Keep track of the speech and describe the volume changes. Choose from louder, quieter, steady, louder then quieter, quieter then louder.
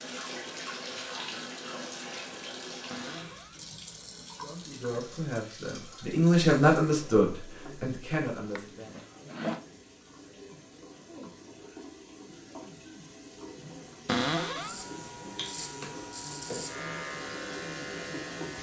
louder then quieter.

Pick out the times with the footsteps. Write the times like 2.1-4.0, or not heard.
not heard.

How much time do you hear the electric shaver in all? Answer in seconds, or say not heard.
4 s.